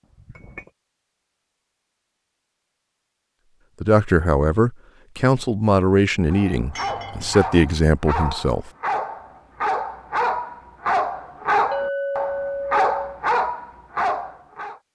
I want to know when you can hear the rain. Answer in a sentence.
The rain can't be heard in this clip.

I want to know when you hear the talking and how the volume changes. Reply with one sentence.
You can hear the talking from 3.8 to 8.7 s, at a steady volume.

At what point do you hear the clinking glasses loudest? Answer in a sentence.
The loudest moment of the clinking glasses is at 12 seconds.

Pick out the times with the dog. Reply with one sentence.
The dog can be heard from 6.2 to 14.8 s.